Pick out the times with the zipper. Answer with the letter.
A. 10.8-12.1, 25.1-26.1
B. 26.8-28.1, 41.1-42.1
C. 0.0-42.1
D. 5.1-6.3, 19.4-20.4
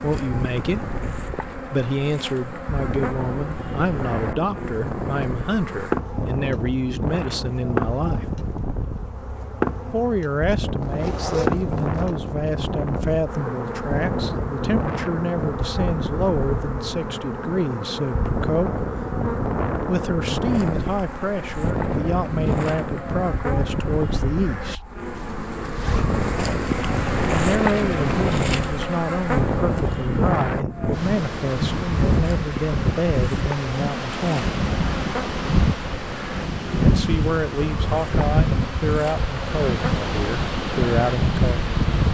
A.